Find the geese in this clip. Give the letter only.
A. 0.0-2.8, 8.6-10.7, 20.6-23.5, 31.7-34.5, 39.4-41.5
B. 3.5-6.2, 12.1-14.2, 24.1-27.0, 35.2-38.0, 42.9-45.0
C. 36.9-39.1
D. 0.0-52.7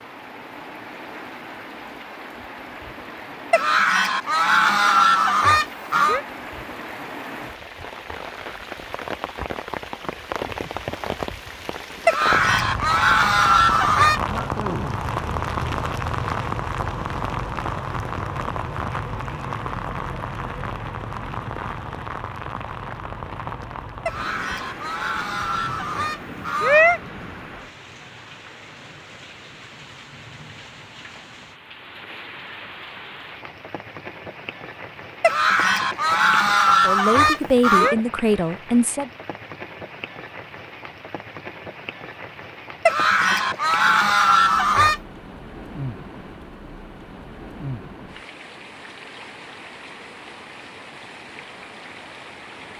B.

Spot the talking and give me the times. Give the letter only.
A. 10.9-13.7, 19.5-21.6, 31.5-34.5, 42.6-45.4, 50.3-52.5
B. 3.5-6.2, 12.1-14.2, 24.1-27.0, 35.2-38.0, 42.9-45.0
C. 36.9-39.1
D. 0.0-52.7
C.